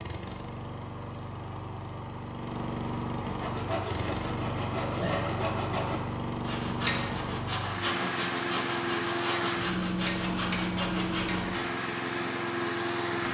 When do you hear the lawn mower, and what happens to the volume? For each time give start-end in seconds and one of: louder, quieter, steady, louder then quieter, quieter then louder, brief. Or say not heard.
0.0-13.3 louder.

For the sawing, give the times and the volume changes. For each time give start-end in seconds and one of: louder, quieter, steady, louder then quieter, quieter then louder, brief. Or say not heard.
3.2-11.8 steady.